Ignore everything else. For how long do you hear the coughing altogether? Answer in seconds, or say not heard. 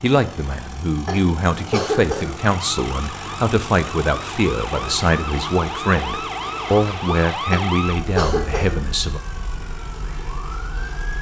3 s.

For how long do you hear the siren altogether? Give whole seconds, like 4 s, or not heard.
9 s.